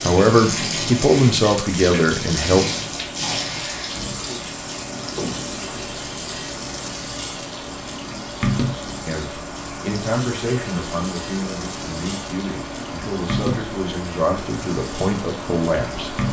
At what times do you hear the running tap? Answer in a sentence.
The running tap can be heard from 0.0 to 16.2 s.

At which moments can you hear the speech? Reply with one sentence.
You can hear the speech from 0.0 to 2.6 s and from 9.1 to 16.1 s.